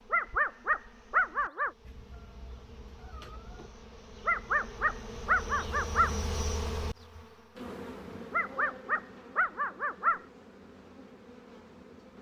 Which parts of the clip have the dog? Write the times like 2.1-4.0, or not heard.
0.1-1.7, 4.2-6.2, 8.3-10.2.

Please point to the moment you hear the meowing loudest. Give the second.
3 s.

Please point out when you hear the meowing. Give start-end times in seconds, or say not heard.
1.8-3.8.